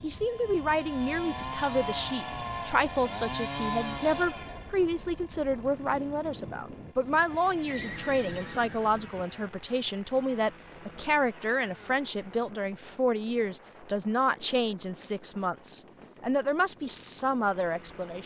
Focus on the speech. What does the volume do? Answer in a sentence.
The loudness of the speech stays about the same.